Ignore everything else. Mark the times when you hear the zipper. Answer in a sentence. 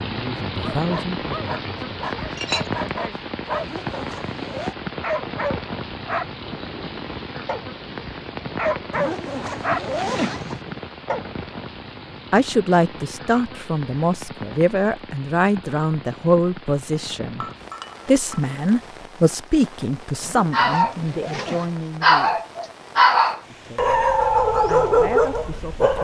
You can hear the zipper from 3.5 to 4.8 s, from 8.9 to 10.7 s and from 20.2 to 21.8 s.